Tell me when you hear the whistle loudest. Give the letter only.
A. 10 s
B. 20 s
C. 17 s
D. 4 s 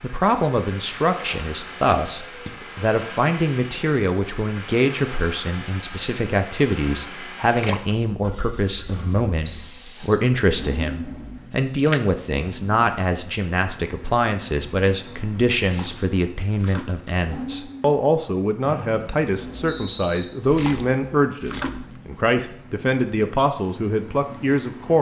A.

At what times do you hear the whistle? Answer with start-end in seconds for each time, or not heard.
9.4-10.2, 18.6-20.2.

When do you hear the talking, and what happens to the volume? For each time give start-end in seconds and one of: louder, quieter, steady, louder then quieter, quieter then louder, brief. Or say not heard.
0.0-24.9 steady.